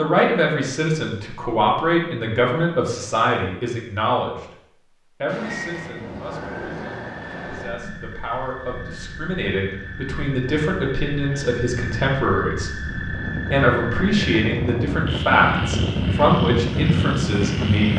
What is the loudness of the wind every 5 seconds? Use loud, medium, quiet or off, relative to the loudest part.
off, quiet, medium, loud.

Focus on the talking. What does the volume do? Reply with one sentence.
The volume of the talking goes down, then up.